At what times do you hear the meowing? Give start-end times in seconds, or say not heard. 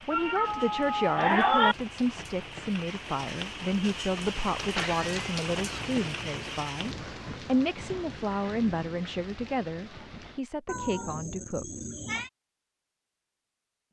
0.1-1.8, 4.8-6.6, 10.7-12.3.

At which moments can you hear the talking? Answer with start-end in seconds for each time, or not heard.
0.1-11.7.